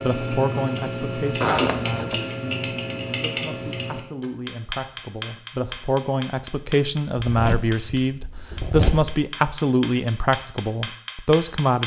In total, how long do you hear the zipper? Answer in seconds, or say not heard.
3 s.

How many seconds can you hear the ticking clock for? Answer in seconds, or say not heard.
12 s.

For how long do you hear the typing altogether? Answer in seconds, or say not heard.
not heard.